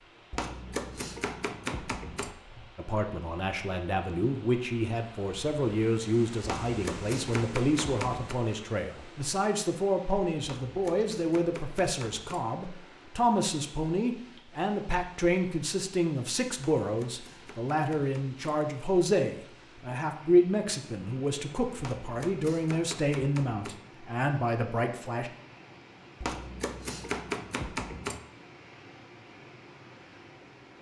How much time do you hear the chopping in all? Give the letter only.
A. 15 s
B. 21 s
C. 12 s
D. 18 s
C.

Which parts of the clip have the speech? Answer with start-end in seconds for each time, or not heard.
2.8-25.3.